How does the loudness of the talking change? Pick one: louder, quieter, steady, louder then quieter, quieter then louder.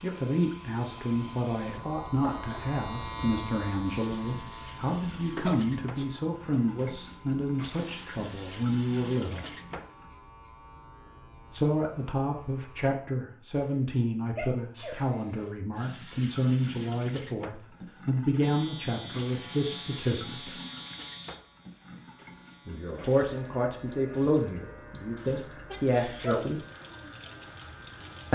steady.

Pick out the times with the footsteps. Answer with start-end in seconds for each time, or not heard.
not heard.